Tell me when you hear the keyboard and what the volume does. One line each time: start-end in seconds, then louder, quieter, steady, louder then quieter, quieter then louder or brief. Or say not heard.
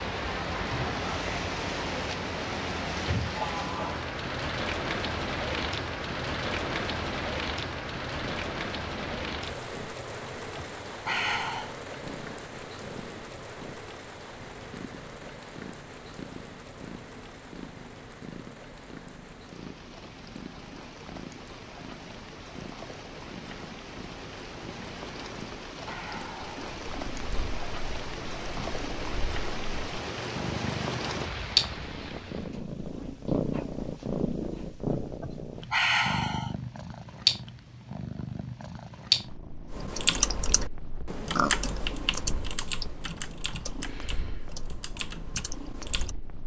39.7-46.1 quieter.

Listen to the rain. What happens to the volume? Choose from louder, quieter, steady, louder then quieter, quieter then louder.
quieter then louder.